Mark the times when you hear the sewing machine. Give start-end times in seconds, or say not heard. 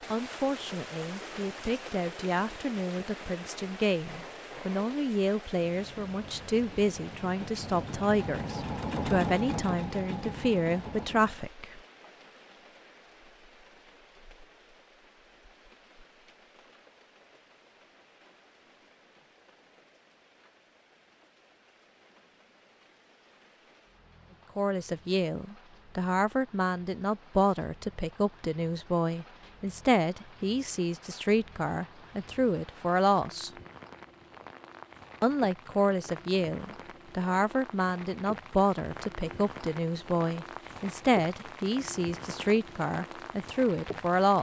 0.0-11.6.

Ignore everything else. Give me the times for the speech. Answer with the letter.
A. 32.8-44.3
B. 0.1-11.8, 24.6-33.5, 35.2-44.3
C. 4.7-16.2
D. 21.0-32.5
B.